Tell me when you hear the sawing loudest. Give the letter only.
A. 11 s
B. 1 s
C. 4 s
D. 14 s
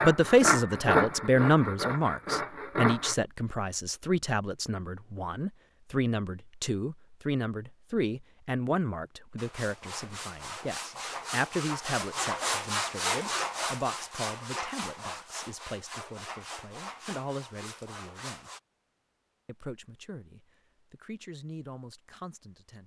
B.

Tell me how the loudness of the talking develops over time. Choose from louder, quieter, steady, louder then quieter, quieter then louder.
quieter.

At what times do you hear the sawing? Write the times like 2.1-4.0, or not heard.
0.0-3.1, 9.3-18.6.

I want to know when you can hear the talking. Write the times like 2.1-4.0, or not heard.
0.0-18.5, 19.4-22.8.